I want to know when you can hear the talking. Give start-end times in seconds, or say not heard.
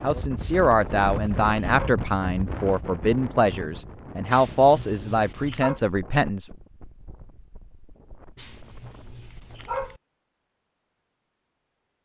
0.0-6.5.